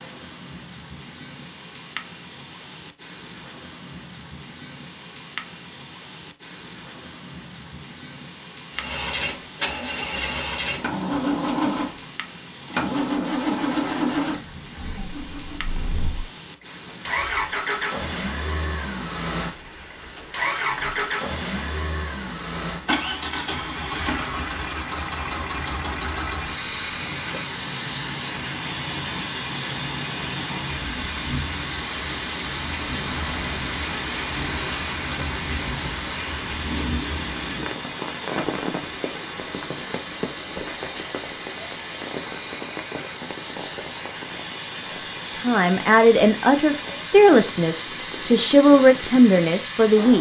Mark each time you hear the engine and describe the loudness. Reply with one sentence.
You can hear the engine from 8.7 to 50.1 s, getting quieter.